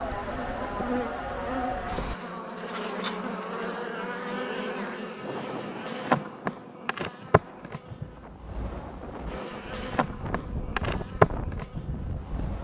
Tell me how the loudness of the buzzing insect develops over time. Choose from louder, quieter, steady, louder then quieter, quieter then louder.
quieter then louder.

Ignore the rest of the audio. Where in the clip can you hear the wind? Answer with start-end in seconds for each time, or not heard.
5.2-12.6.